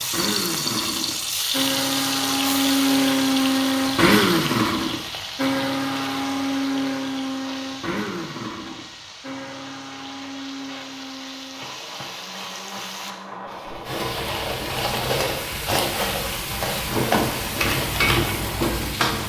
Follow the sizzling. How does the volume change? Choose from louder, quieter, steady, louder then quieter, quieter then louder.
quieter then louder.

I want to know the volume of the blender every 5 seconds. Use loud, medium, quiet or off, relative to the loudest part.
loud, medium, quiet, quiet.